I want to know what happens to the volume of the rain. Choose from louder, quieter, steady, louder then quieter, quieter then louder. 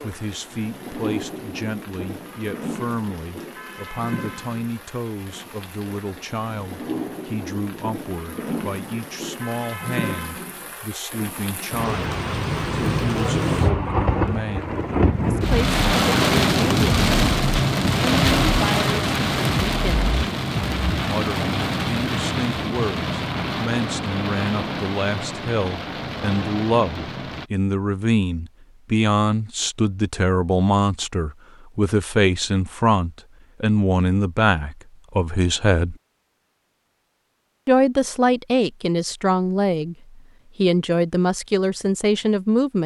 louder then quieter.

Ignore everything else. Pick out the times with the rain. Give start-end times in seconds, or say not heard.
0.0-27.5.